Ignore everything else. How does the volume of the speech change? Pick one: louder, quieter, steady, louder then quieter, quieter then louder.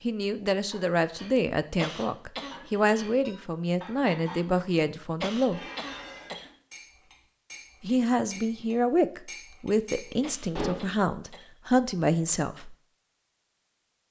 steady.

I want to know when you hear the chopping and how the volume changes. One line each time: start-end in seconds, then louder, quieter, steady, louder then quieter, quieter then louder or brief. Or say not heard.
not heard.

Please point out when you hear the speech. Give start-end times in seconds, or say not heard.
0.0-5.6, 7.8-12.8.